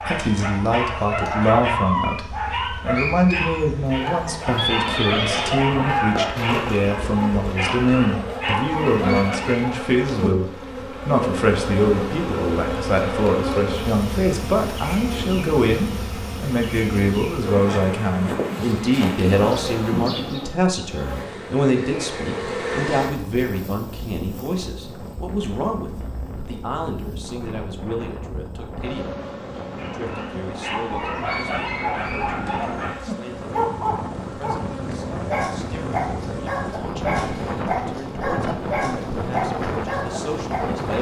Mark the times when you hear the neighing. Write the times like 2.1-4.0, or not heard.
4.5-5.8.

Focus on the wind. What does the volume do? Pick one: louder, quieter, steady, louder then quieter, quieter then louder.
louder.